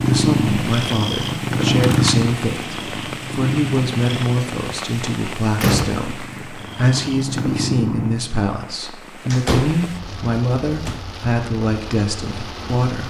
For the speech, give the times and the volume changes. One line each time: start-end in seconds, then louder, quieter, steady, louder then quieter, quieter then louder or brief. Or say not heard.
0.0-13.0 steady.